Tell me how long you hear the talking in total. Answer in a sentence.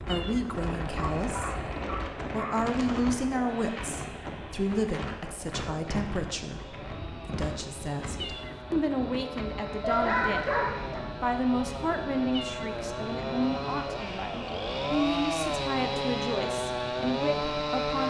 You can hear the talking for 17 seconds altogether.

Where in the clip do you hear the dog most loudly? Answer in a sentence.
The loudest moment of the dog is at 10 seconds.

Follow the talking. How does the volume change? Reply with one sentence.
The volume of the talking stays about the same.